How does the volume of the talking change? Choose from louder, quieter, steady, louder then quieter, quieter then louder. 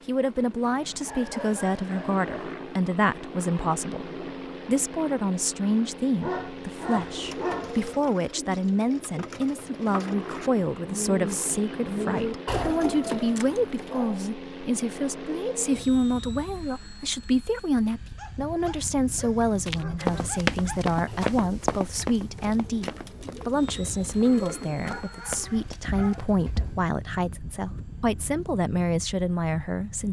steady.